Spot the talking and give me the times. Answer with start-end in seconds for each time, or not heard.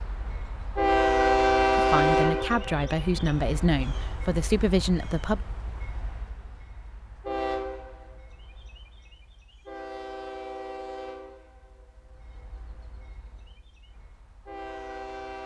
1.8-5.4.